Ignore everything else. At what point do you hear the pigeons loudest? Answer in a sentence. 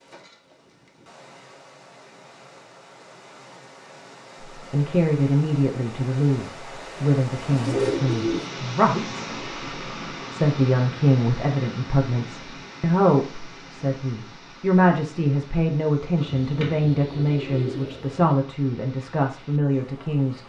The loudest moment of the pigeons is at 8 seconds.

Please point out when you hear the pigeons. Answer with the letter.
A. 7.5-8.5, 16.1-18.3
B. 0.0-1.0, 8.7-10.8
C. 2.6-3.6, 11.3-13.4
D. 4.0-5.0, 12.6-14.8
A.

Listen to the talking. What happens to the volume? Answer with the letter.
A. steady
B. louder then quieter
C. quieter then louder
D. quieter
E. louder
A.